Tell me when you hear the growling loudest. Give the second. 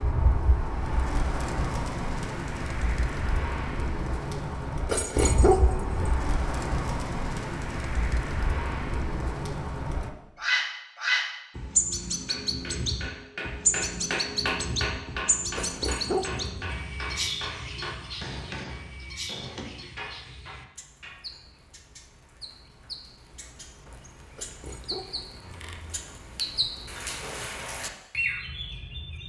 5 s.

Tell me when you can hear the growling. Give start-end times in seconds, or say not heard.
4.8-6.2, 15.6-16.8, 24.4-25.9.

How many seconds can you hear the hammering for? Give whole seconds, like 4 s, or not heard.
9 s.